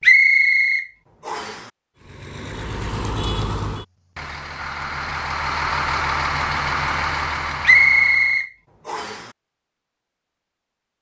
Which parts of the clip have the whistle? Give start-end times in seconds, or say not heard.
0.0-1.6, 7.6-9.2.